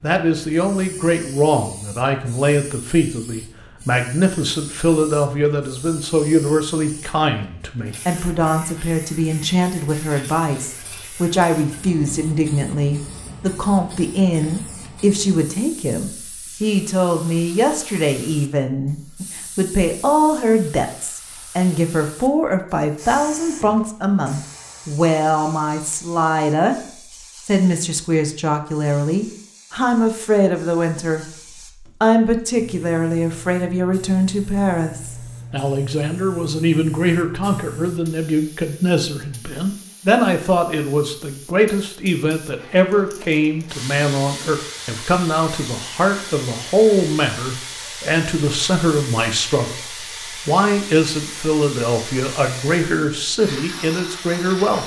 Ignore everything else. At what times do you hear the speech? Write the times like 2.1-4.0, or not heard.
0.0-26.8, 27.4-54.8.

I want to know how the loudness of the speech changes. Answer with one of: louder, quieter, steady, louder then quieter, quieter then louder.
steady.